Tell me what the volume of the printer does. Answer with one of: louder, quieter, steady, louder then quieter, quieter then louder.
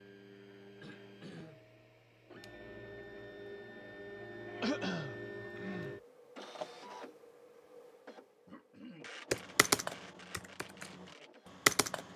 louder then quieter.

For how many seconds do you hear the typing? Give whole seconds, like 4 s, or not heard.
3 s.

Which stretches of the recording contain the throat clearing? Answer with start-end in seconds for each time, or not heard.
0.8-1.6, 4.6-6.0, 8.4-9.1.